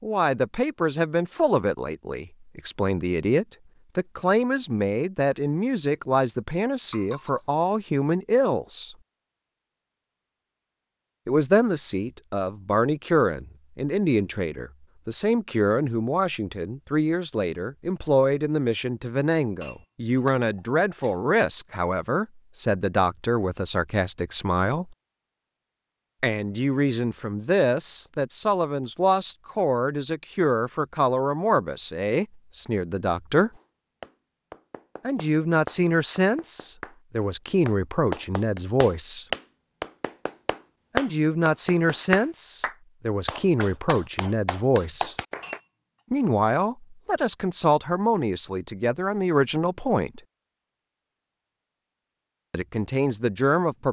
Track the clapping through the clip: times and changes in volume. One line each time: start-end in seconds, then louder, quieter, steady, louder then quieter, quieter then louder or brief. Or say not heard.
33.5-45.6 louder then quieter.